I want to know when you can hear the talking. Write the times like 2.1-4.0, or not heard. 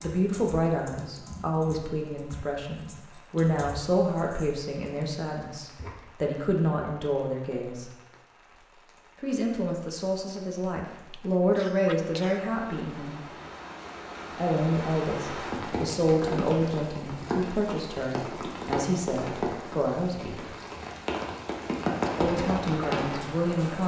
0.0-7.9, 9.2-13.2, 14.3-20.4, 22.1-23.8.